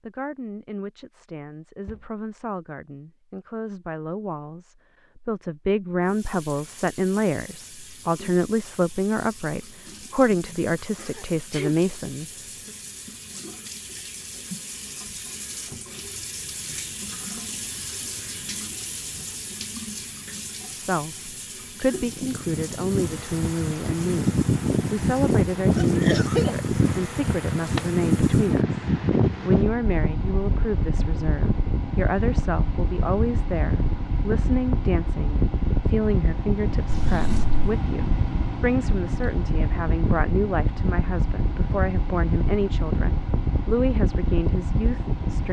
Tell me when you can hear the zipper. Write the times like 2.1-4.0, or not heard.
not heard.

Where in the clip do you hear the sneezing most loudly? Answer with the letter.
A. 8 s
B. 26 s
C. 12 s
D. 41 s
B.